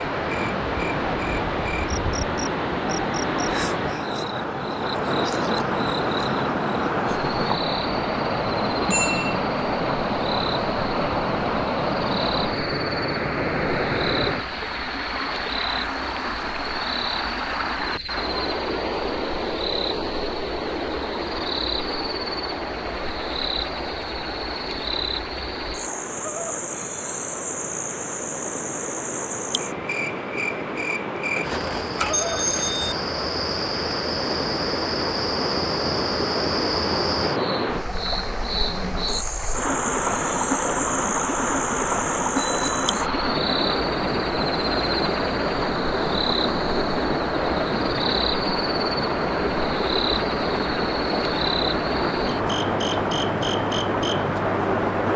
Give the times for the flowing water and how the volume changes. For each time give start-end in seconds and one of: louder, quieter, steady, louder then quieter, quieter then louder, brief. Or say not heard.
0.0-55.1 quieter then louder.